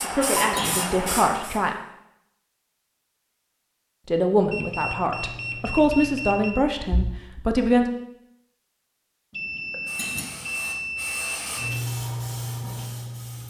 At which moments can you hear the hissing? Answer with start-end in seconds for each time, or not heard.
0.0-1.8, 9.8-13.4.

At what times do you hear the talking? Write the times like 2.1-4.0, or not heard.
0.0-1.8, 4.0-7.8.